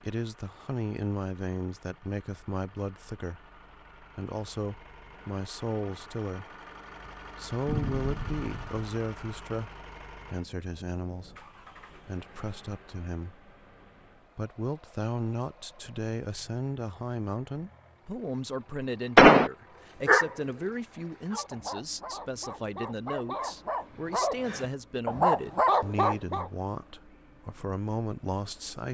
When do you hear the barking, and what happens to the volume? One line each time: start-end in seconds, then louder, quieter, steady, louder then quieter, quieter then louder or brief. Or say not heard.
20.1-26.5 louder.